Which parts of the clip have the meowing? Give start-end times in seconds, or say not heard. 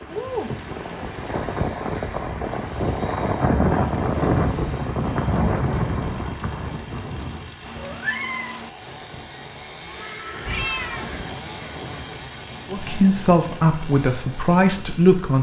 0.1-1.4, 7.7-8.7, 10.4-11.2.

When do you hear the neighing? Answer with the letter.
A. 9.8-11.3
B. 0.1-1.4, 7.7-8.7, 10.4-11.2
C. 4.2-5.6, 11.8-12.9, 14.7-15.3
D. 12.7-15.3
A.